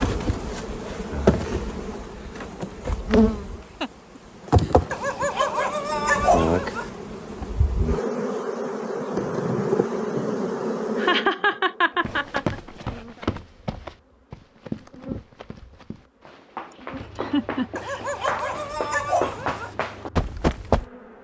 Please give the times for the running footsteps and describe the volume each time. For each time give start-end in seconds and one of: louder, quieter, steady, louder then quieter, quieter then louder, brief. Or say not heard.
12.0-20.9 quieter then louder.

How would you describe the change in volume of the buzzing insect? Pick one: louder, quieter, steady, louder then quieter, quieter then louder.
quieter.